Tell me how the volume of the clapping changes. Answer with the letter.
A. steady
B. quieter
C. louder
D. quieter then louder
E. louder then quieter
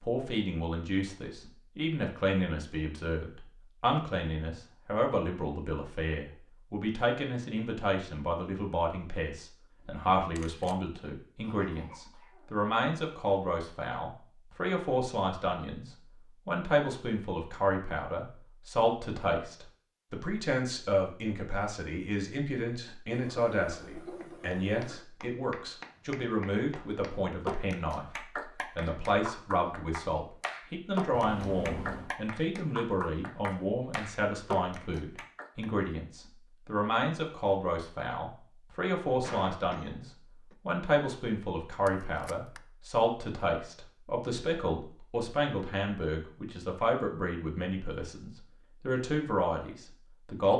C.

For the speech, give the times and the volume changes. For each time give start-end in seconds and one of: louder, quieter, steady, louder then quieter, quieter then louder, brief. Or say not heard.
0.0-50.5 steady.